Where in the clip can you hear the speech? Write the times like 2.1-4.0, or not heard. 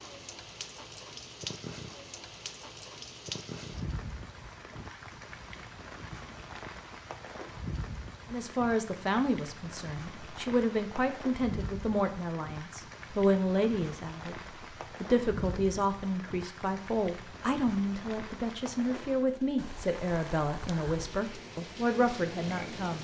8.3-14.4, 15.0-23.0.